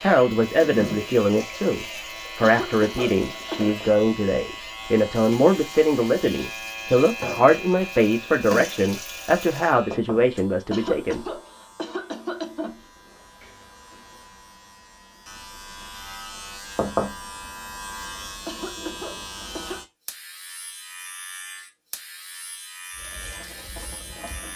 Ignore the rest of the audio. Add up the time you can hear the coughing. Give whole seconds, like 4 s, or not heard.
5 s.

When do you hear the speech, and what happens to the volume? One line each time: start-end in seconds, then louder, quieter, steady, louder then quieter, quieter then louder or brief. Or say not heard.
0.0-11.2 steady.